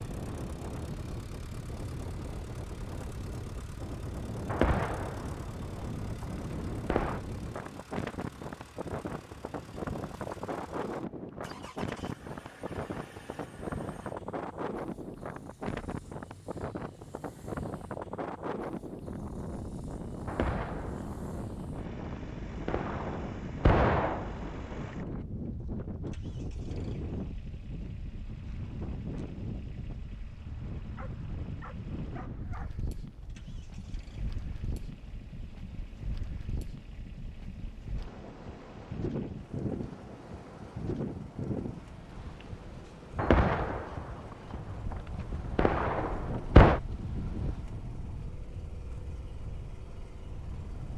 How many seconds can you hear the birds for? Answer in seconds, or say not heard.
not heard.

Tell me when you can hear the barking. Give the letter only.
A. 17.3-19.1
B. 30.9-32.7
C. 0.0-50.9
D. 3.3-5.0
B.